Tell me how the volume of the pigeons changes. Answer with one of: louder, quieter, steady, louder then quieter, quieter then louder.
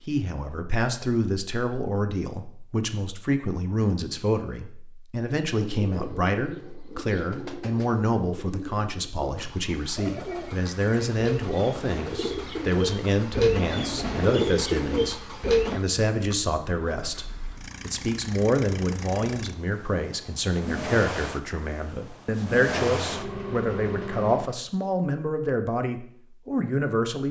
louder.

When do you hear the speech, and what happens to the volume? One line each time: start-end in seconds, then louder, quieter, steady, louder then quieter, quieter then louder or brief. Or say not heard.
0.1-27.2 steady.